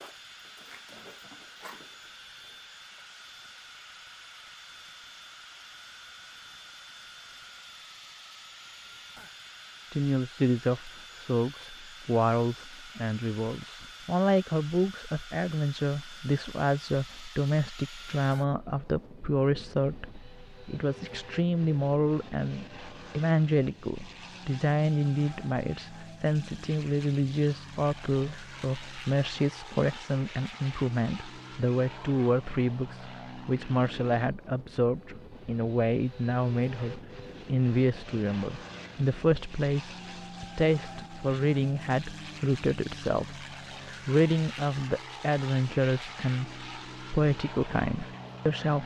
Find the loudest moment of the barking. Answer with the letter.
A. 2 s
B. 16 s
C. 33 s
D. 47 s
A.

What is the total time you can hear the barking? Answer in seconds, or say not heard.
3 s.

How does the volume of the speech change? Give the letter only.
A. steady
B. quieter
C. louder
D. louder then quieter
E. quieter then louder
A.